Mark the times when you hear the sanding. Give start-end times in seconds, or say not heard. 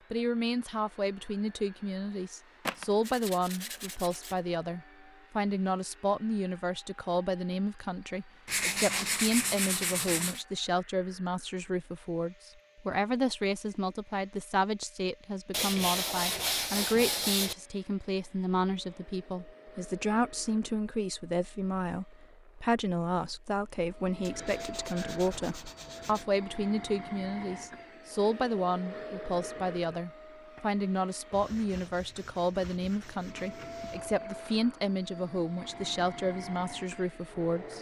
2.6-4.3, 8.4-10.4, 15.5-17.6, 24.2-26.2, 31.3-34.2.